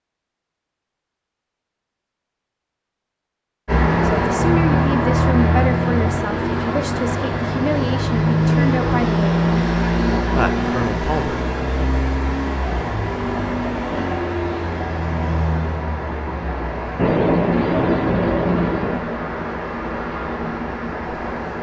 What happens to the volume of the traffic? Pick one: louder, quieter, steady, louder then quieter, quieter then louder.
quieter.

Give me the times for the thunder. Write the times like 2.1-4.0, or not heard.
16.9-19.0.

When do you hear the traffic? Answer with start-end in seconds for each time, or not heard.
3.6-21.5.